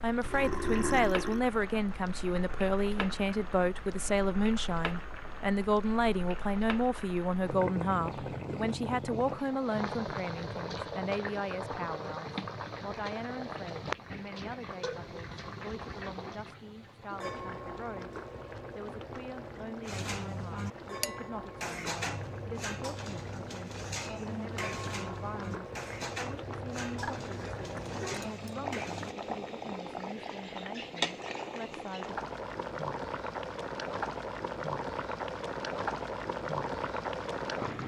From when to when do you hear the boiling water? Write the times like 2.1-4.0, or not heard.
0.0-37.8.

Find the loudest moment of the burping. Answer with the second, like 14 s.
1 s.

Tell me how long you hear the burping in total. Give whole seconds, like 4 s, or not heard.
4 s.